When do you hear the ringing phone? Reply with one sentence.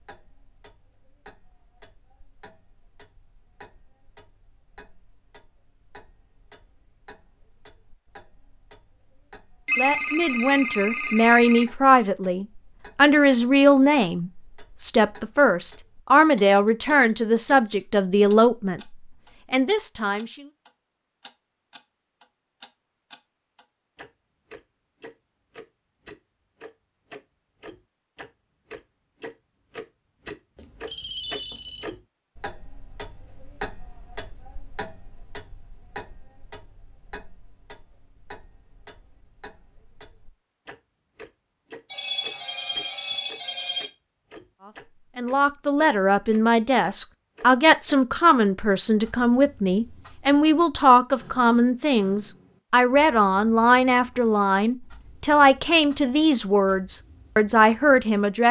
The ringing phone can be heard from 9.7 to 11.7 s, from 30.6 to 31.9 s and from 41.9 to 43.9 s.